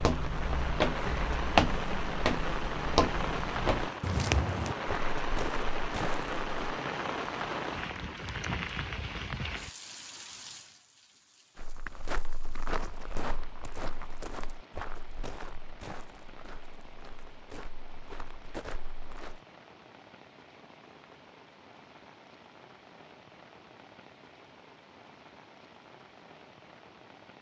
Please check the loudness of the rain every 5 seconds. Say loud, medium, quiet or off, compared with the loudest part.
loud, loud, quiet, quiet, quiet, quiet.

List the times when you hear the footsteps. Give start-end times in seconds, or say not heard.
0.0-6.8, 11.6-19.4.